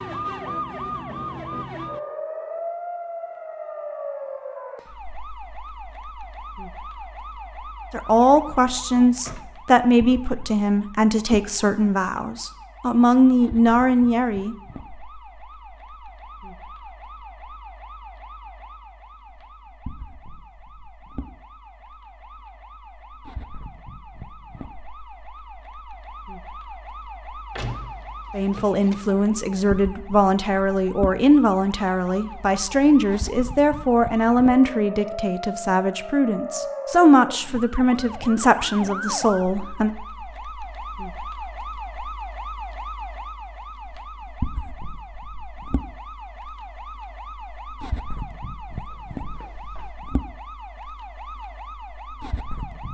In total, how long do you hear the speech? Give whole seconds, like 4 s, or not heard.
18 s.